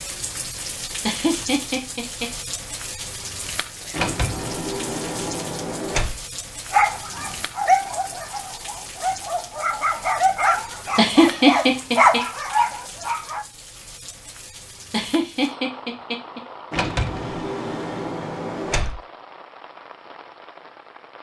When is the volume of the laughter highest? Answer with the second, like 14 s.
11 s.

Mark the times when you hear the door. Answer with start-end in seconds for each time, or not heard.
3.9-6.2, 16.7-19.0.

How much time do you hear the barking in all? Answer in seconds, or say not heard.
7 s.